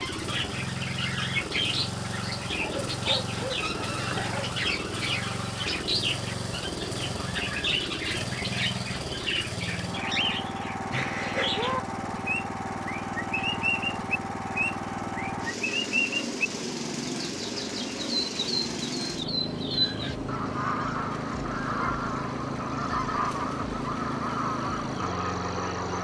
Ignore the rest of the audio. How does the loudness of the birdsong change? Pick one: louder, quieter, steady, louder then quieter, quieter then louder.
steady.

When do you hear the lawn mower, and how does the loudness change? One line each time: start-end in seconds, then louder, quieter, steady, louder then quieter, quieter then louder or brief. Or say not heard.
0.0-26.0 steady.